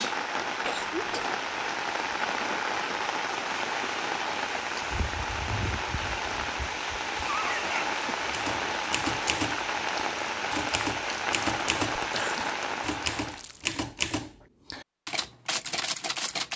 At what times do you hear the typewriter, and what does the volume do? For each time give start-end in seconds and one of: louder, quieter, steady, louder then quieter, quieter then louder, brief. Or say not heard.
8.3-16.5 steady.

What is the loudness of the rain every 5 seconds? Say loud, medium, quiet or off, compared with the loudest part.
loud, loud, loud, off.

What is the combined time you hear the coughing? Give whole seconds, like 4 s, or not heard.
2 s.